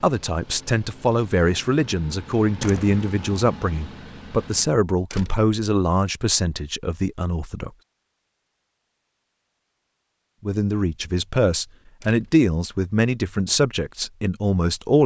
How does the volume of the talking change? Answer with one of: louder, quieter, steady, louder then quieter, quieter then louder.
steady.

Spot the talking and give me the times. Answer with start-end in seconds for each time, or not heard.
0.0-7.7, 10.4-15.0.